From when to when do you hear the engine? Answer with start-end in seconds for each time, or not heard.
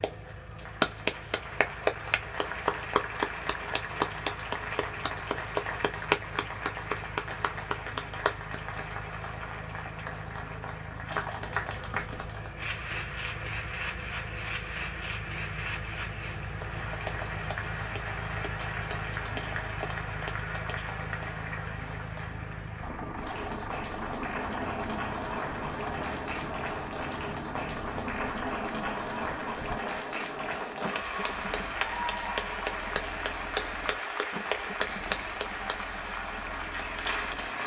0.0-37.6.